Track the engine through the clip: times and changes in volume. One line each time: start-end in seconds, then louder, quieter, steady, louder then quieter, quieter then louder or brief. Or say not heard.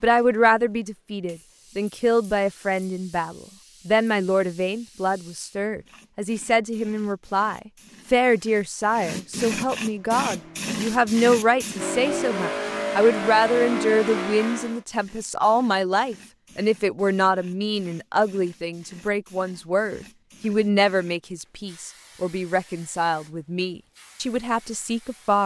9.8-14.8 louder.